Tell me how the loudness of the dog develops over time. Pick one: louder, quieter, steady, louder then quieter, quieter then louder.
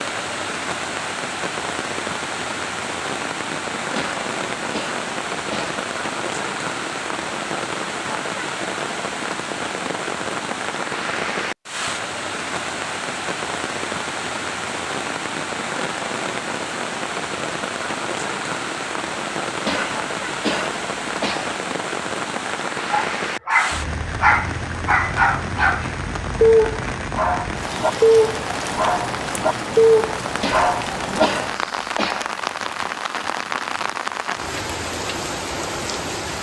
steady.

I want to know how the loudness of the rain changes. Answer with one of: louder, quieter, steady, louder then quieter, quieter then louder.
steady.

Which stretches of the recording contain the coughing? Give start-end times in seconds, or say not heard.
4.0-5.8, 19.6-21.6, 30.4-32.4.